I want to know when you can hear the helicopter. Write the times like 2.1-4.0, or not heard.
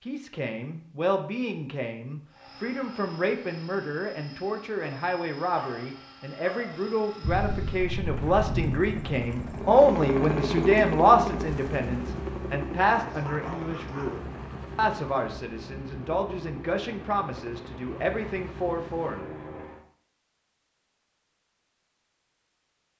2.3-19.9.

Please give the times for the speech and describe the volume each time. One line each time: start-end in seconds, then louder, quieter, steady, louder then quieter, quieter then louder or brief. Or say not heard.
0.1-19.3 louder then quieter.